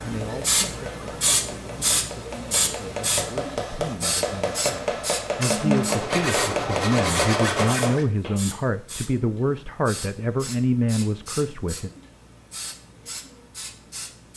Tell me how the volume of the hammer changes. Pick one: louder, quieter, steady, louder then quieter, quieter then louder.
louder.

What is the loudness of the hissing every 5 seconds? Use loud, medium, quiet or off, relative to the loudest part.
loud, medium, quiet.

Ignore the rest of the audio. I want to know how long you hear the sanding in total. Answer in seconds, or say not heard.
3 s.